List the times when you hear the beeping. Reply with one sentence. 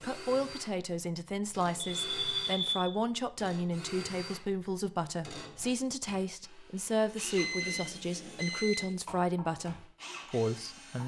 You can hear the beeping from 1.8 to 3.0 s and from 7.3 to 8.9 s.